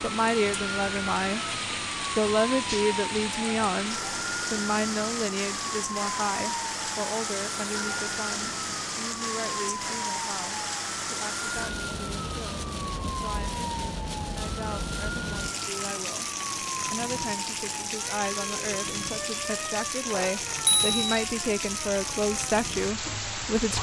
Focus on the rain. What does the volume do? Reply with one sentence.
The volume of the rain stays about the same.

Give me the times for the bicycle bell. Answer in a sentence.
The bicycle bell can be heard from 20.1 to 21.2 s.